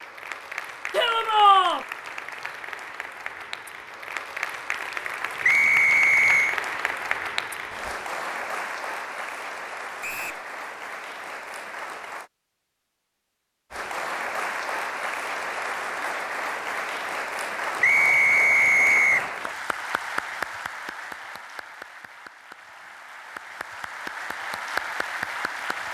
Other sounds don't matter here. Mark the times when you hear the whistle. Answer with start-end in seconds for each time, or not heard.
5.4-6.5, 10.0-10.4, 17.8-19.2.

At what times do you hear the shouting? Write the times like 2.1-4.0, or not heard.
0.9-1.9.